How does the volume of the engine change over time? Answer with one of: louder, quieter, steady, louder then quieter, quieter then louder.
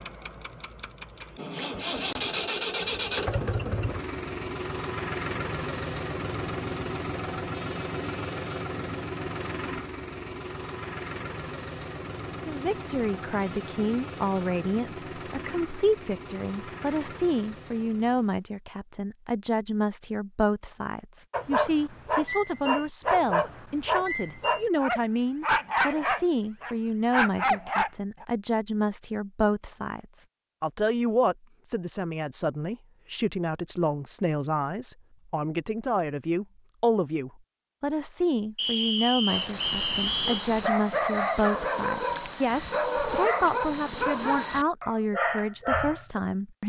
quieter.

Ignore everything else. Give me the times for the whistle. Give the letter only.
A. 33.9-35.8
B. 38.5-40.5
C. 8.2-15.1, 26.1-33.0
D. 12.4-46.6
B.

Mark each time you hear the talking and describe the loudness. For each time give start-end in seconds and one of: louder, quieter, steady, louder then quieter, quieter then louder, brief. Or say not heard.
12.4-46.6 steady.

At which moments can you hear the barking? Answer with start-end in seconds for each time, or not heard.
21.3-28.2, 39.2-46.2.